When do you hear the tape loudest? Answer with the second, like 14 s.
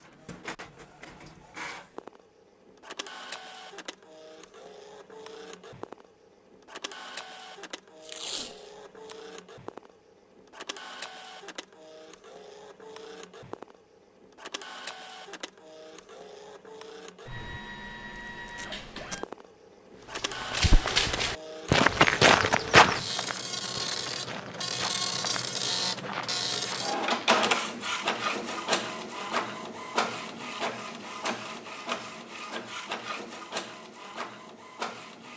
8 s.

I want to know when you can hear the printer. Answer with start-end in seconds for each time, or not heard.
0.0-35.3.